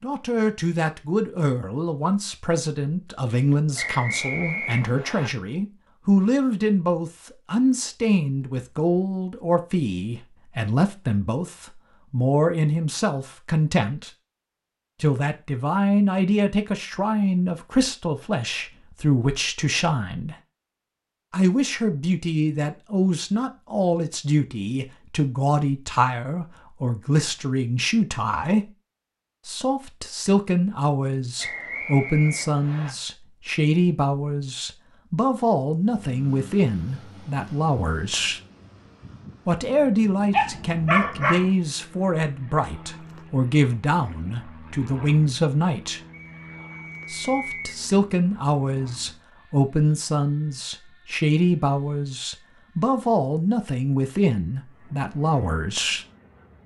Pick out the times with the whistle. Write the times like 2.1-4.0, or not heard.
3.8-5.3, 31.4-33.0, 46.1-47.8.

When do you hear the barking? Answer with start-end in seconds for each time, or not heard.
40.3-41.5.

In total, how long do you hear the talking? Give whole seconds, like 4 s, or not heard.
51 s.